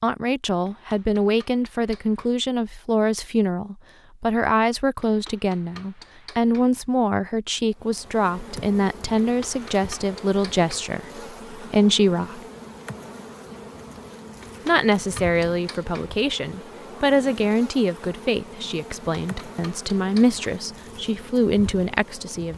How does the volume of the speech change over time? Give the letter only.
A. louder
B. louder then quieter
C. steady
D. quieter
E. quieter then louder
C.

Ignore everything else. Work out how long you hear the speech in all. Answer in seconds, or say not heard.
20 s.